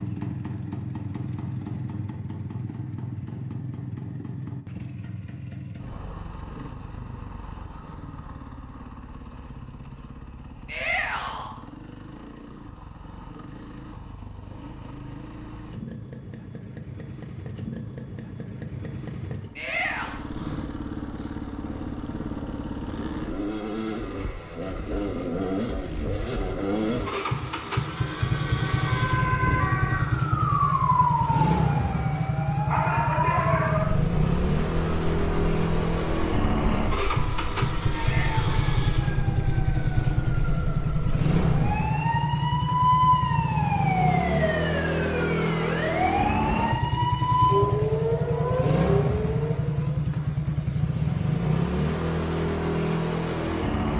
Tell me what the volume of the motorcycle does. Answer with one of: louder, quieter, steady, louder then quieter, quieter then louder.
louder.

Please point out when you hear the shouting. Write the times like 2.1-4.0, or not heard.
10.7-11.5, 19.6-20.1, 37.9-38.6.